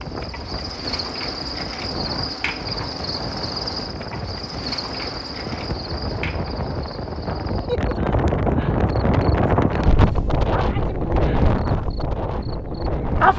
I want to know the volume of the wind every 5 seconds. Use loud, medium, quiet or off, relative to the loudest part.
medium, loud, loud.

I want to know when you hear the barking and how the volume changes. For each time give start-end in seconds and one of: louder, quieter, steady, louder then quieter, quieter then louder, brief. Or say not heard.
not heard.